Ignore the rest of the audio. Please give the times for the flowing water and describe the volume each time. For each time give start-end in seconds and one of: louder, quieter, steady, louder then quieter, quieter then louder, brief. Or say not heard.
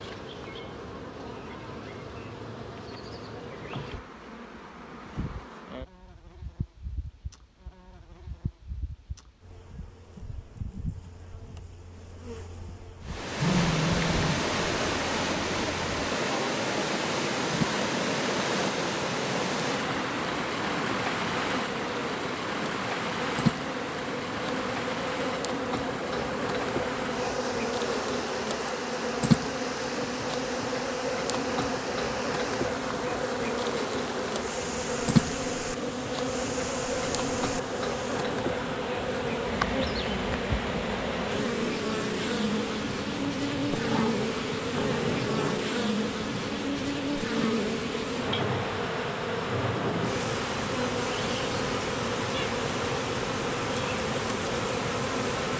13.1-55.5 quieter.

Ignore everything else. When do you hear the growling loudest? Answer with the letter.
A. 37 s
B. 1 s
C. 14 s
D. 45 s
C.